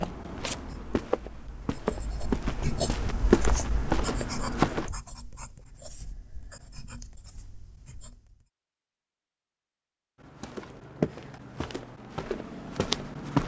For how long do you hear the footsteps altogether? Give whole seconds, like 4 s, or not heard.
8 s.